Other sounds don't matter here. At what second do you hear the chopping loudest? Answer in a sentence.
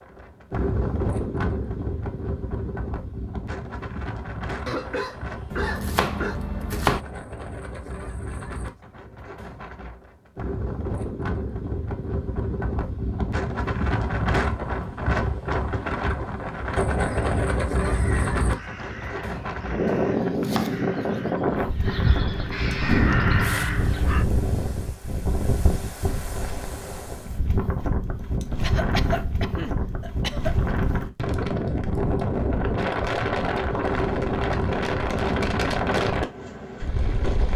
The loudest moment of the chopping is at 7 seconds.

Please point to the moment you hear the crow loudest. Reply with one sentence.
The loudest moment of the crow is at 23 seconds.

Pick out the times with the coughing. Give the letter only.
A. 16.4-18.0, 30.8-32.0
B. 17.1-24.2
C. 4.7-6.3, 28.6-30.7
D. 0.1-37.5
C.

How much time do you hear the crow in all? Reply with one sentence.
The crow can be heard for 7 seconds in total.